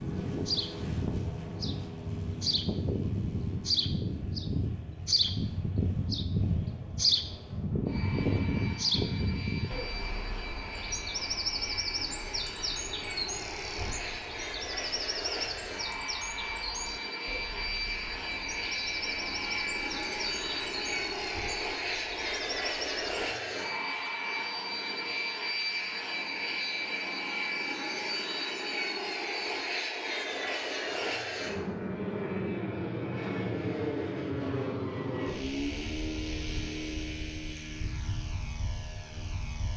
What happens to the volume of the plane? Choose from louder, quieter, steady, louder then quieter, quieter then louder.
louder.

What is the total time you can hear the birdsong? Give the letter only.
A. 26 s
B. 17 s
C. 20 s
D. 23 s
D.